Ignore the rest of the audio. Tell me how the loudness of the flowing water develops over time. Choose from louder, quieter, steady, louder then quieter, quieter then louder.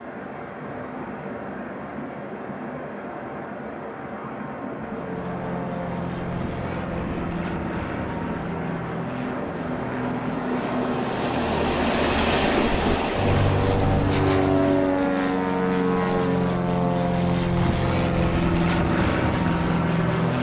louder then quieter.